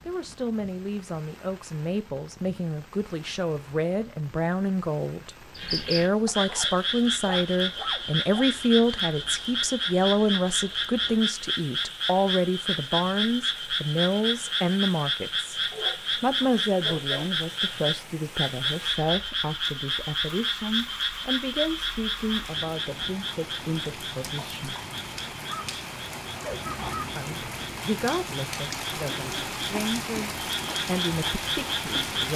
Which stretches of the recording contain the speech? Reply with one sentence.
You can hear the speech from 0.1 to 15.6 s, from 16.2 to 24.8 s and from 27.1 to 32.3 s.